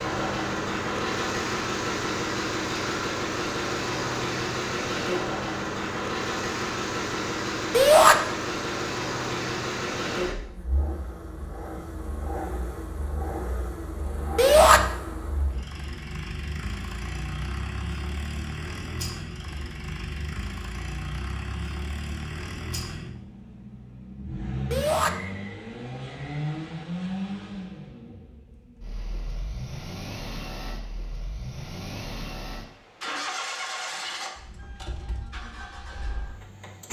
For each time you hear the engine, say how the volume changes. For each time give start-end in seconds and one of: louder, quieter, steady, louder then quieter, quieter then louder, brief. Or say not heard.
0.0-36.8 quieter.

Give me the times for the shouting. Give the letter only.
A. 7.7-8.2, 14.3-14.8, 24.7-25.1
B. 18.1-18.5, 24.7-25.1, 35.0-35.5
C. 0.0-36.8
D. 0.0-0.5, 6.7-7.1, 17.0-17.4
A.